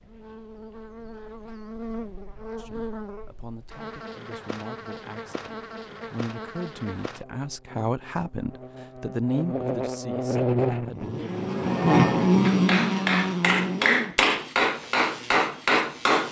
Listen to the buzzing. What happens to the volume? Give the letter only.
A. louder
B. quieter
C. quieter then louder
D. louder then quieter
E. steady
D.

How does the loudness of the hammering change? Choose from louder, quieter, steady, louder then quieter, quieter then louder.
louder.